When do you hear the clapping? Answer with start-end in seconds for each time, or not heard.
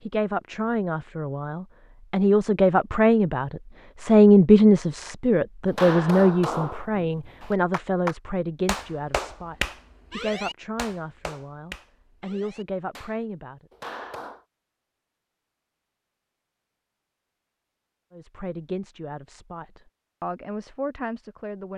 5.7-14.4.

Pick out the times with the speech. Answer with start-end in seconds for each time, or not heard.
0.0-13.7, 18.1-21.7.